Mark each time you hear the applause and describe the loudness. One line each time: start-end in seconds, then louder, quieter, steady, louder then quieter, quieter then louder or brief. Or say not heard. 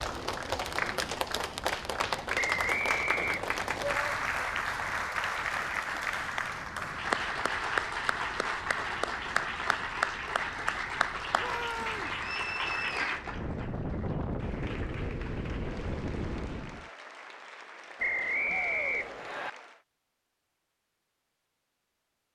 0.0-19.9 quieter.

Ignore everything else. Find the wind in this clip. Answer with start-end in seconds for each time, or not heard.
0.0-16.9.